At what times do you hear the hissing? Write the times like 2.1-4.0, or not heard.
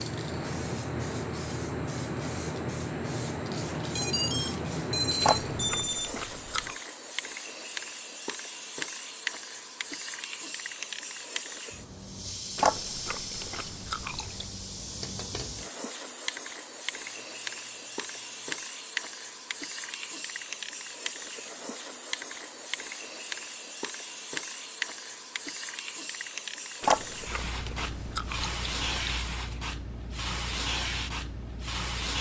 0.0-32.1.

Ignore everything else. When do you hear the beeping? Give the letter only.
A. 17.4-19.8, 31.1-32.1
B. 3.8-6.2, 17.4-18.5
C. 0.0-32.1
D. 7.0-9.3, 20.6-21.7
B.